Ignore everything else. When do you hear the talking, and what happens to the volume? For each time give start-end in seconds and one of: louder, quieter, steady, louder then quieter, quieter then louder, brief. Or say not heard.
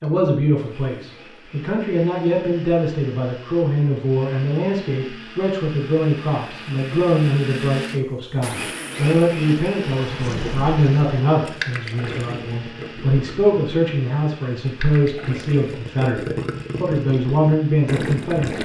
0.0-18.6 steady.